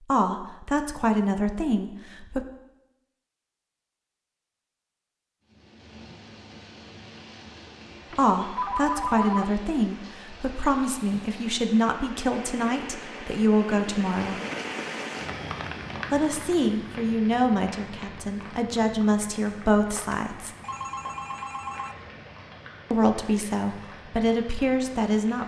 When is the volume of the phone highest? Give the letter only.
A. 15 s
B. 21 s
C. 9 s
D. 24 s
C.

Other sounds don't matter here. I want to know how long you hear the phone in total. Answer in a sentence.
The phone can be heard for 3 seconds in total.